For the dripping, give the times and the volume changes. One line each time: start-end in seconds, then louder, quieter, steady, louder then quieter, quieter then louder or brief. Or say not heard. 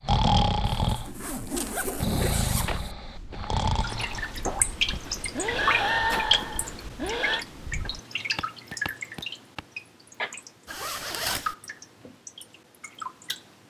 3.8-13.6 quieter.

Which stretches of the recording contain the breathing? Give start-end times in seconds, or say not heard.
0.0-7.5.